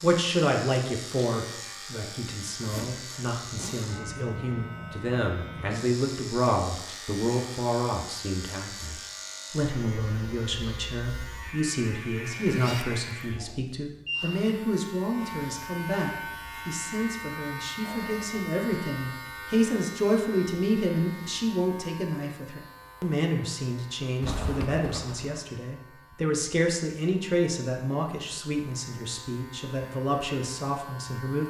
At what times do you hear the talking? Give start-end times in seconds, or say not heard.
0.0-31.4.